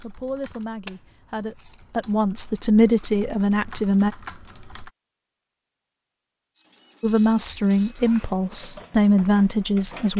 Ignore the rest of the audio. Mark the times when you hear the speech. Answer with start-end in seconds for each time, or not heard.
0.0-4.1, 7.0-10.1.